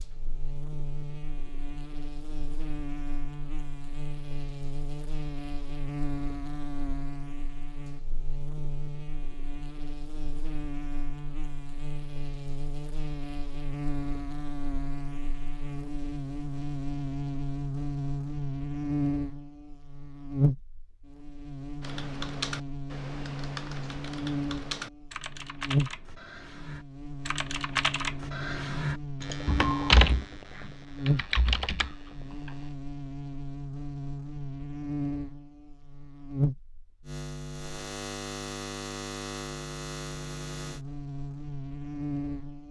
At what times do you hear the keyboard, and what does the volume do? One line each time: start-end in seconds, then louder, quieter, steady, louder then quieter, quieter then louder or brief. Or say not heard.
21.8-32.6 louder then quieter.